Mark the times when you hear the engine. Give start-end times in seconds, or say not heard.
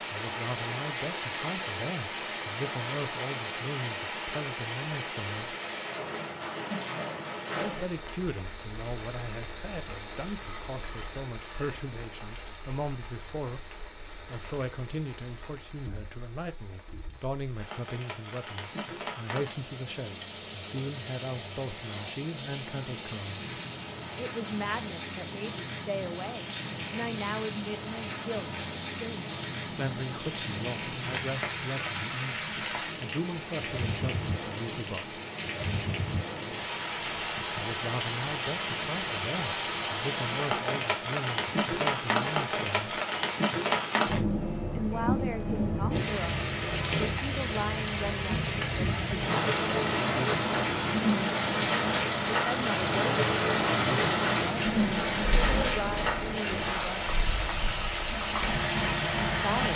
49.2-59.7.